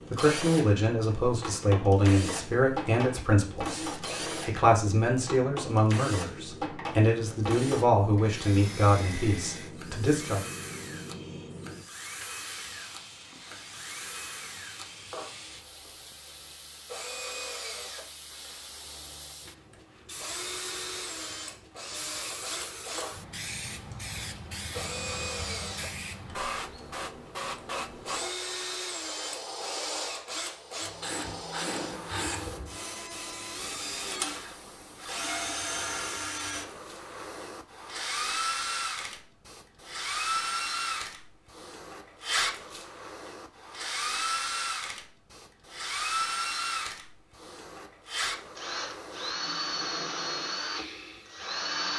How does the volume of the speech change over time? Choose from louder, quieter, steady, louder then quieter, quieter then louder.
steady.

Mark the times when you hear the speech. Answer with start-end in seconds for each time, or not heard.
0.1-10.4.